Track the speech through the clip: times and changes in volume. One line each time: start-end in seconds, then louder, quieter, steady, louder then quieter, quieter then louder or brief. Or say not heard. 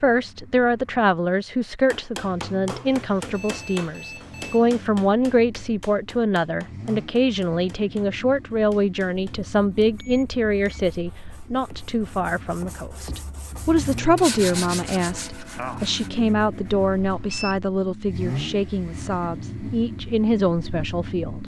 0.0-21.4 steady.